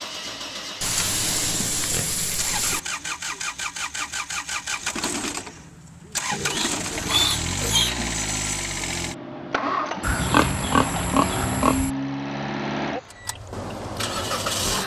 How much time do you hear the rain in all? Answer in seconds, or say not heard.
not heard.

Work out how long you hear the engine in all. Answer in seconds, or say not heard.
15 s.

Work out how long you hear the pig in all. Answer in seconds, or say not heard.
6 s.